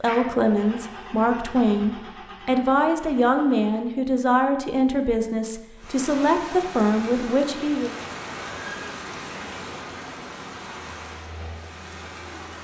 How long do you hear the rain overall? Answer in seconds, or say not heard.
7 s.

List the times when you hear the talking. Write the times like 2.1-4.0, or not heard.
0.0-8.0.